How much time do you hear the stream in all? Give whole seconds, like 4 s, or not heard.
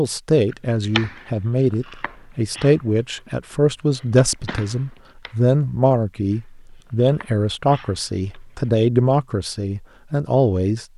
not heard.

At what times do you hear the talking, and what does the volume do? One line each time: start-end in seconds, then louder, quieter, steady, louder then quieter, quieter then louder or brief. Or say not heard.
0.0-10.8 steady.